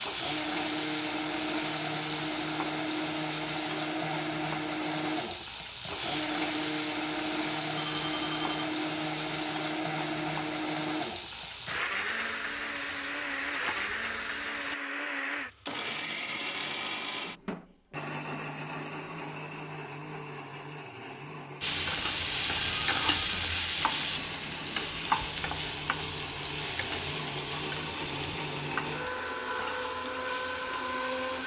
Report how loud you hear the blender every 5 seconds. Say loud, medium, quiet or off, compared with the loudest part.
loud, loud, loud, loud, medium, loud, loud.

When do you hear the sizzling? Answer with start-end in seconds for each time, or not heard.
0.0-14.8, 21.6-31.4.